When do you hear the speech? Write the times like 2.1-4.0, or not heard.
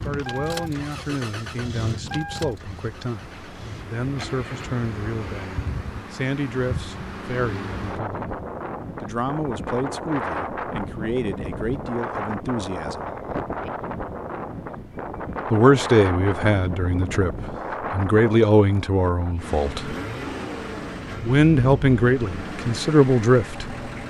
0.0-8.2, 9.0-13.1, 15.5-19.9, 21.2-23.7.